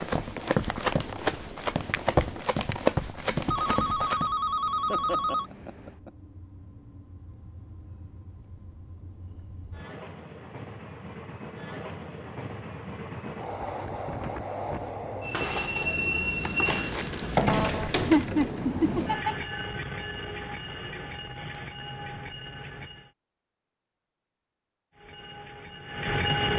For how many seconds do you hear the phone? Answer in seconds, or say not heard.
3 s.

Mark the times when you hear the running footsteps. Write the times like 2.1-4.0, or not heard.
0.0-4.3.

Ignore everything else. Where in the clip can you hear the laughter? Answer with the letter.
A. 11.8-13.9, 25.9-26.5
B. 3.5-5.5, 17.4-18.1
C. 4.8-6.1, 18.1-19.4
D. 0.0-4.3
C.